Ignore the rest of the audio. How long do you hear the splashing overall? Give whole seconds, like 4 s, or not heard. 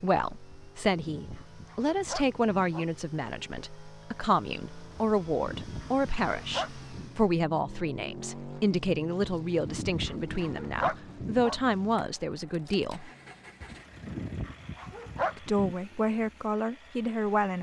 not heard.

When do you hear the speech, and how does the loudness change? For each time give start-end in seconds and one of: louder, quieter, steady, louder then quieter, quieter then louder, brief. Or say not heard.
0.0-13.1 steady
15.3-17.5 brief.